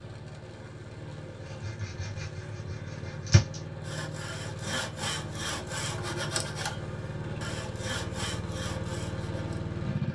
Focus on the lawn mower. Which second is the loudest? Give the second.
10 s.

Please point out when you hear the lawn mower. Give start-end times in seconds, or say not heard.
0.0-10.0.